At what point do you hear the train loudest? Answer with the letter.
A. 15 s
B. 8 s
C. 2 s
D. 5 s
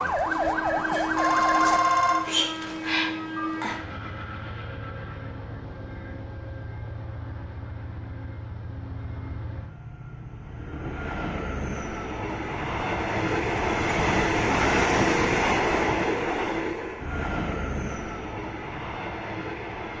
A.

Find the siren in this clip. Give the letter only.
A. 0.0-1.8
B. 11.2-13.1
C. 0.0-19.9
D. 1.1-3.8
A.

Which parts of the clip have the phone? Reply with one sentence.
The phone can be heard from 1.1 to 3.8 s.